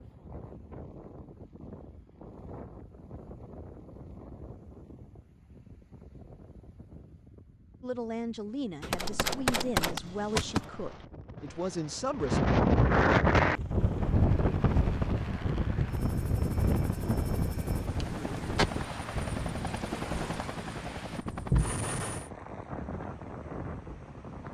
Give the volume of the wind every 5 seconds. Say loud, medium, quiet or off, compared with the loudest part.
quiet, quiet, loud, medium, quiet.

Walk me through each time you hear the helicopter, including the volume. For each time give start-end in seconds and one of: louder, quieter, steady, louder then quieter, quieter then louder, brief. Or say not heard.
13.3-22.3 louder.